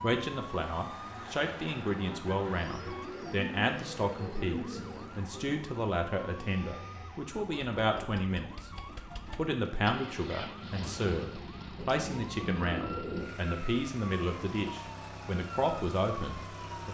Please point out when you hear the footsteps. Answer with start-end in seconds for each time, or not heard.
not heard.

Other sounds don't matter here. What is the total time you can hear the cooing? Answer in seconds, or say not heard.
4 s.